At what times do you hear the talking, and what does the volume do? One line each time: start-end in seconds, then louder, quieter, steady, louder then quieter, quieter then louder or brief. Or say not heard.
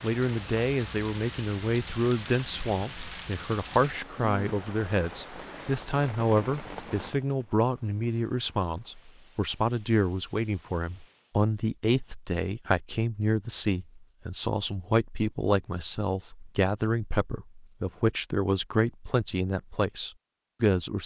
0.0-21.0 steady.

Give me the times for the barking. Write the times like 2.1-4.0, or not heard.
not heard.